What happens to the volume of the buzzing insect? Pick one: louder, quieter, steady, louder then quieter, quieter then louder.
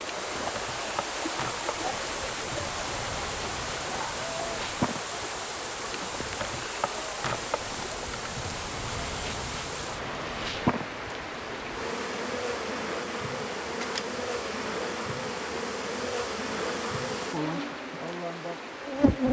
louder.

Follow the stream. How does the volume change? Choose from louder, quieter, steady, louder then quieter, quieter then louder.
quieter.